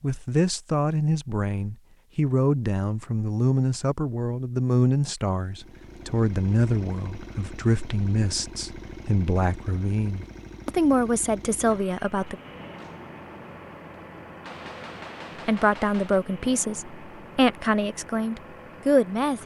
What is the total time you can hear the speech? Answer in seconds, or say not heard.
16 s.